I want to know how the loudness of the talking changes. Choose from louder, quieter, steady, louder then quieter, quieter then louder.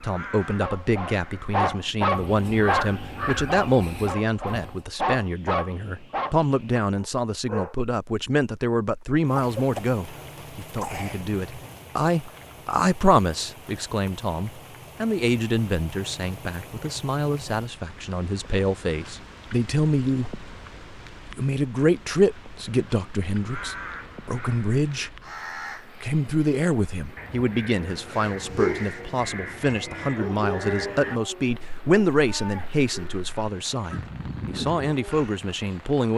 steady.